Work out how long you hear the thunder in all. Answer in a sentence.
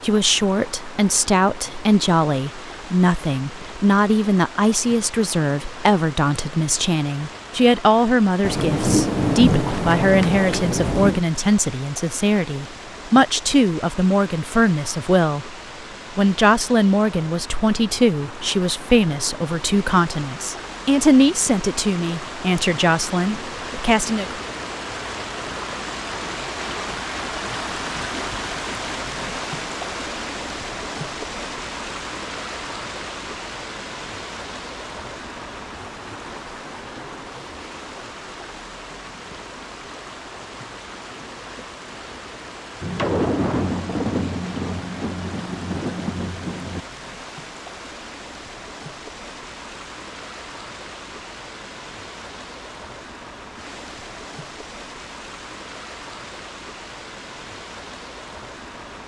You can hear the thunder for 7 seconds altogether.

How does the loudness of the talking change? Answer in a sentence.
The loudness of the talking stays about the same.